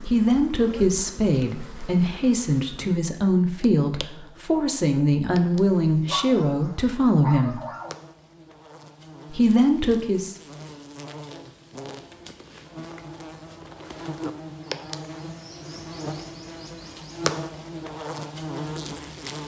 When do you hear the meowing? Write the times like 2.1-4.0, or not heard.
not heard.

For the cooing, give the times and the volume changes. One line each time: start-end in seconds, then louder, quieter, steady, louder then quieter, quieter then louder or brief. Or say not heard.
not heard.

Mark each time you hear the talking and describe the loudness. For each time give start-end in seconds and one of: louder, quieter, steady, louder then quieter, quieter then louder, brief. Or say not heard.
0.1-7.6 steady
9.3-10.3 brief.